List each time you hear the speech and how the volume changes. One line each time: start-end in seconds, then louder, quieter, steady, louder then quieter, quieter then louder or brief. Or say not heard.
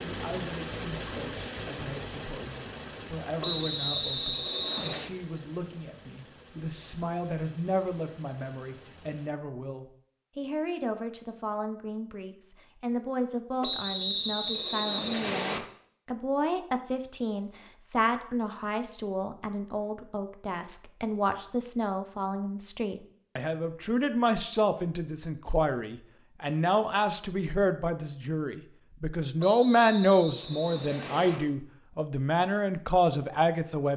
0.0-33.9 louder.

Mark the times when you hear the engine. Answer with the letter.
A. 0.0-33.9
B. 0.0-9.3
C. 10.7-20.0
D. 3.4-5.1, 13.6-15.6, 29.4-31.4
B.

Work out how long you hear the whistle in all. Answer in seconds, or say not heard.
6 s.